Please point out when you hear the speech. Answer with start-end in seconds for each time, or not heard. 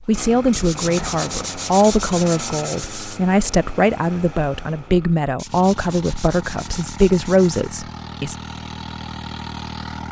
0.1-8.3.